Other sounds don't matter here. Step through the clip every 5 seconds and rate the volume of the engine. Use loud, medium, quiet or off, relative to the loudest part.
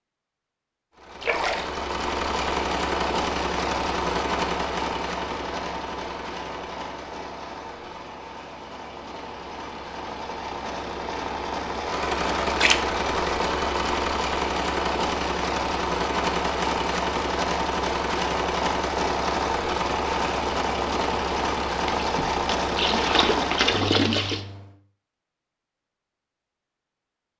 loud, medium, loud, loud, loud, off.